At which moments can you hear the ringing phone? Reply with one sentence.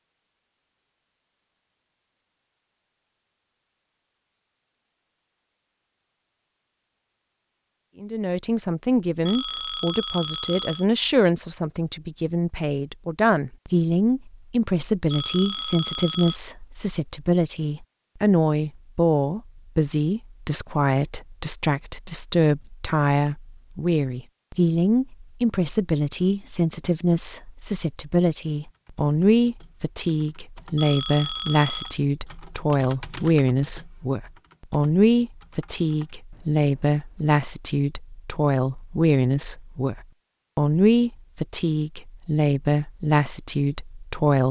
The ringing phone can be heard from 9.2 to 10.8 s, from 15.1 to 16.4 s and from 30.8 to 32.0 s.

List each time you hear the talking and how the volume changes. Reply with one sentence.
The talking can be heard from 8.0 to 44.4 s, at a steady volume.